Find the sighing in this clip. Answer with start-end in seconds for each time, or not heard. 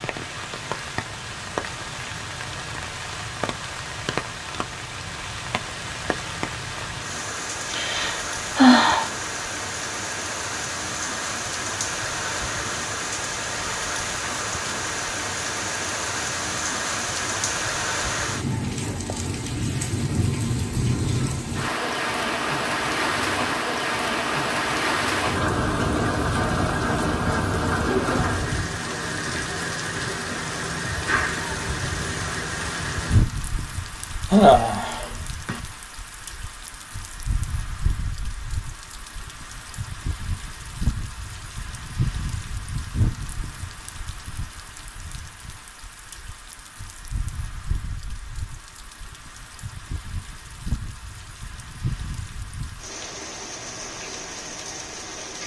7.7-9.1, 34.3-35.5.